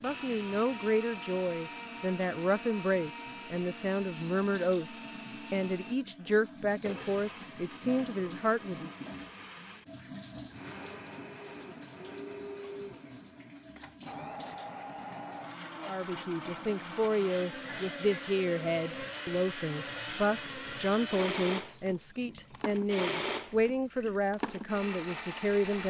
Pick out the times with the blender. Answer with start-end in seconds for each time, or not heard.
0.0-25.8.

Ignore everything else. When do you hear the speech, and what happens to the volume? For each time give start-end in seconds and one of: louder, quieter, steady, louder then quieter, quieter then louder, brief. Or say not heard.
0.0-8.9 steady
15.8-25.8 steady.